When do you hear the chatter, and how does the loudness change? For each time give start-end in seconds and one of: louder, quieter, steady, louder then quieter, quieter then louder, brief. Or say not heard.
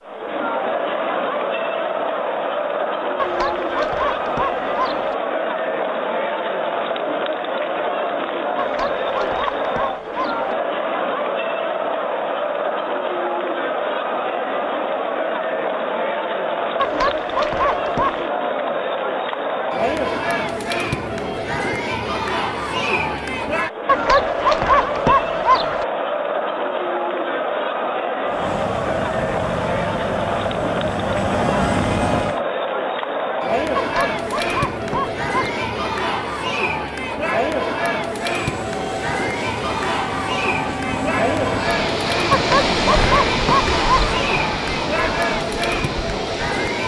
0.0-46.8 steady.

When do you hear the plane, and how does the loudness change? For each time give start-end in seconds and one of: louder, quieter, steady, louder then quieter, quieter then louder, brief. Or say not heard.
28.2-32.4 louder
38.4-46.8 louder then quieter.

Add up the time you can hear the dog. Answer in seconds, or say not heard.
11 s.